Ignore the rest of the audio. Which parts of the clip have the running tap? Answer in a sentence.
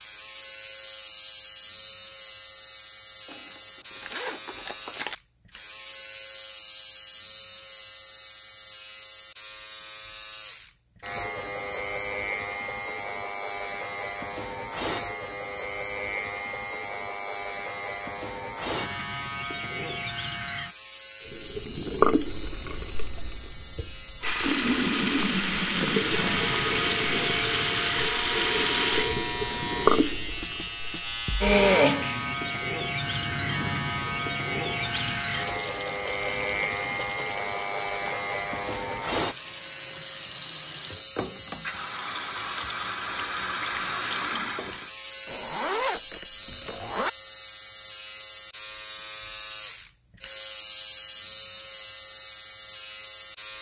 The running tap can be heard from 21.2 to 44.9 s.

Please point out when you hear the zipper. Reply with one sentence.
The zipper can be heard from 3.2 to 5.2 s and from 45.2 to 47.1 s.